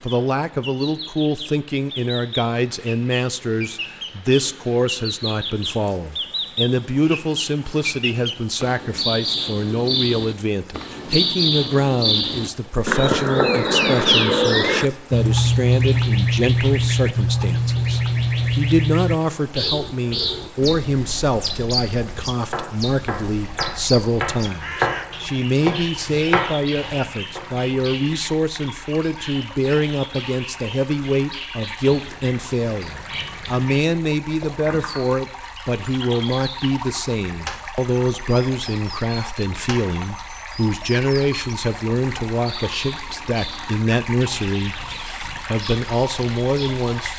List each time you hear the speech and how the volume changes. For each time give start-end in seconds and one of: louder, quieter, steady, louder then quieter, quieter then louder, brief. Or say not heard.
0.0-47.1 steady.